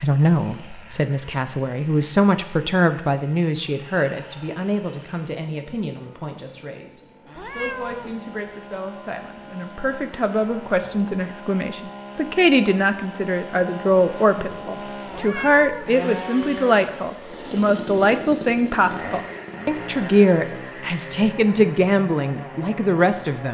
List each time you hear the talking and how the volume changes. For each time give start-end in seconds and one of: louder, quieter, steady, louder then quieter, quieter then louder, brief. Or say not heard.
0.0-23.4 quieter then louder.